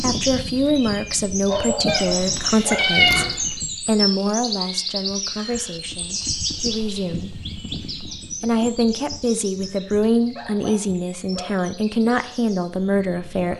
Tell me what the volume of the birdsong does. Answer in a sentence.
The volume of the birdsong goes down.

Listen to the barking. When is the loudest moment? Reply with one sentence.
The volume of the barking peaks at 2 seconds.